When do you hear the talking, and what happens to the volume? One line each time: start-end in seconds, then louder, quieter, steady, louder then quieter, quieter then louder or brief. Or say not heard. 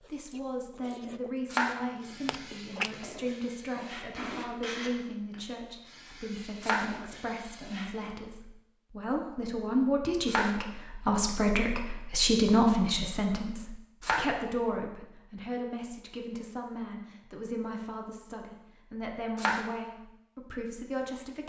0.0-21.4 louder then quieter.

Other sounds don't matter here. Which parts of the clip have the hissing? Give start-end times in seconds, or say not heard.
1.9-8.2.